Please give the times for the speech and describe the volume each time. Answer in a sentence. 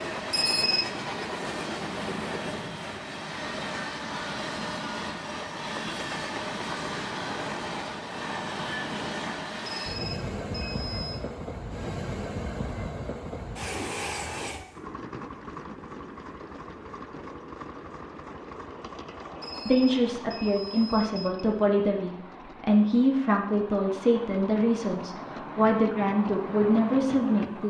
The speech can be heard from 19.6 to 27.6 s, at a steady volume.